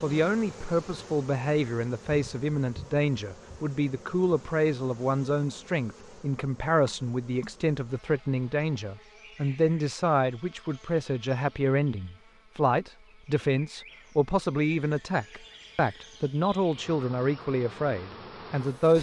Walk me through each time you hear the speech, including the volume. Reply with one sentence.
You can hear the speech from 0.0 to 18.9 s, at a steady volume.